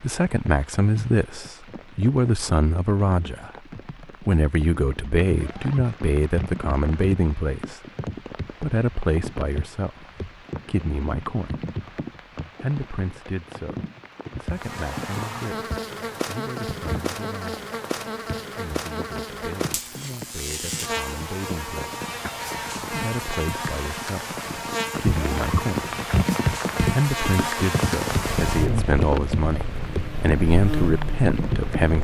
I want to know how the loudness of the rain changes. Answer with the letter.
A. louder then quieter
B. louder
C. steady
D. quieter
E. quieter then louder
B.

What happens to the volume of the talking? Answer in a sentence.
The loudness of the talking goes down, then up.